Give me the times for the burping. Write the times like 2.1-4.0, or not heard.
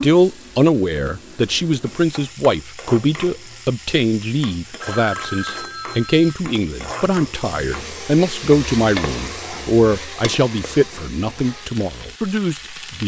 not heard.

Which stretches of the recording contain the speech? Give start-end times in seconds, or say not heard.
0.0-13.0.